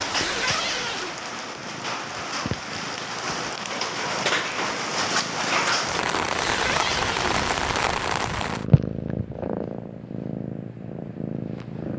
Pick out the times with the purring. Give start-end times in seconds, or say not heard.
0.0-11.9.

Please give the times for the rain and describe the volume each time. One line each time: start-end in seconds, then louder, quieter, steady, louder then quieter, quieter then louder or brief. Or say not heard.
0.0-8.7 louder.